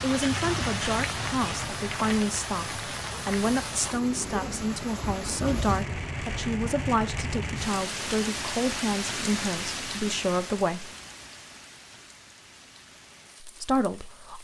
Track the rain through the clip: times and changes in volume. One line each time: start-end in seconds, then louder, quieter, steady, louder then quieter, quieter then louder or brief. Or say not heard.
0.0-14.3 quieter.